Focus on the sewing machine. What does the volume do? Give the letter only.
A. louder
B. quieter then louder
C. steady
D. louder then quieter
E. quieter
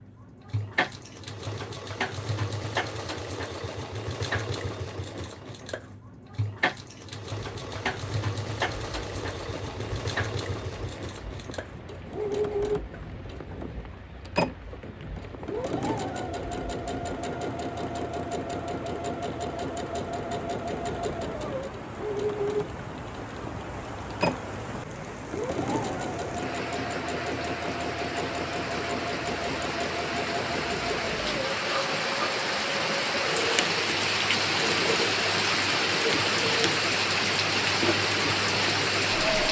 C.